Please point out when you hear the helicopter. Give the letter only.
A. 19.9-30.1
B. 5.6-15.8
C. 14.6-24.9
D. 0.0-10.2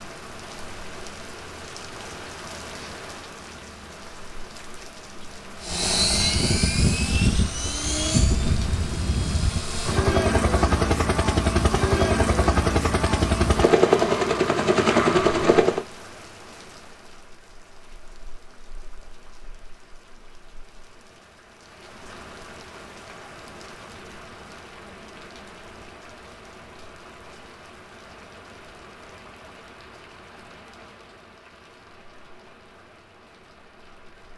B.